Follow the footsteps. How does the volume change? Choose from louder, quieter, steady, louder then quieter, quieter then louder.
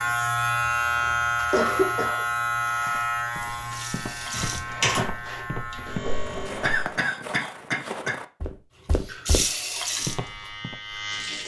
louder.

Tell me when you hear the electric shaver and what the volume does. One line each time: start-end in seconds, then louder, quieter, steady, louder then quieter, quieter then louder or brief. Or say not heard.
0.0-7.0 quieter
9.7-11.4 brief.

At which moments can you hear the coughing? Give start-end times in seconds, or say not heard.
0.6-2.2, 6.6-8.2.